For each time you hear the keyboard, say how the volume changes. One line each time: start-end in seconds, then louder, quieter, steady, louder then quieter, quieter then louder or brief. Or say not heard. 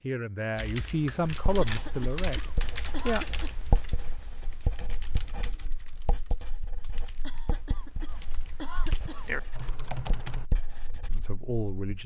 0.6-10.4 quieter then louder.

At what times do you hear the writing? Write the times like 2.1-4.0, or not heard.
1.3-11.8.